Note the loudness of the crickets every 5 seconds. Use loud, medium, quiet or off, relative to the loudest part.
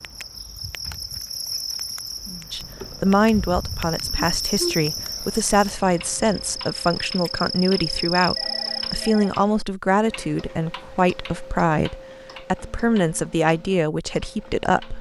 loud, loud, off.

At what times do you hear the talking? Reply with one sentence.
The talking can be heard from 2.5 to 14.9 s.